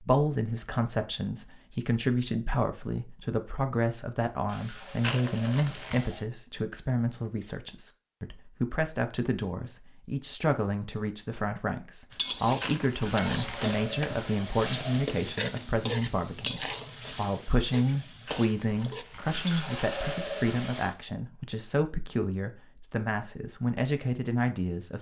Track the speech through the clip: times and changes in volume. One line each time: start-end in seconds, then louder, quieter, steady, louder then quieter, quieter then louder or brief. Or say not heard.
0.0-24.9 steady.